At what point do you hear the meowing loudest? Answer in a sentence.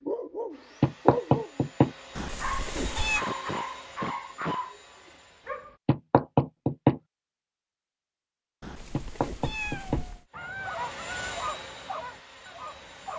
The volume of the meowing peaks at 3 seconds.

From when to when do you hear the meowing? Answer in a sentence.
You can hear the meowing from 2.1 to 3.2 s and from 8.6 to 10.2 s.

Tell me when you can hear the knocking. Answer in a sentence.
The knocking can be heard from 0.8 to 1.9 s, from 5.8 to 7.0 s and from 8.9 to 10.1 s.